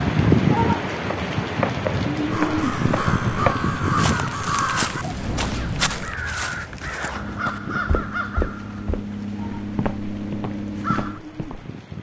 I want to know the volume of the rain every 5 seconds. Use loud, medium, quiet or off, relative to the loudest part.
loud, quiet, quiet.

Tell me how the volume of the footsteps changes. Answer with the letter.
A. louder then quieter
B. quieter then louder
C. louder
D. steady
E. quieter
E.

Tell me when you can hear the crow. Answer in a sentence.
The crow can be heard from 2.2 to 11.2 s.